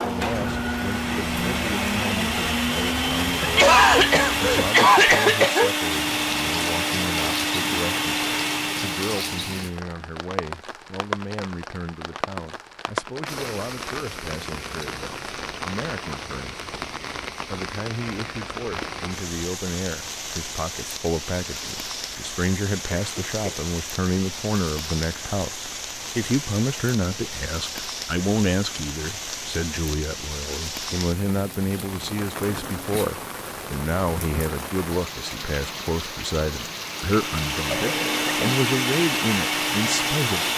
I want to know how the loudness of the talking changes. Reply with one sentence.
The volume of the talking goes up.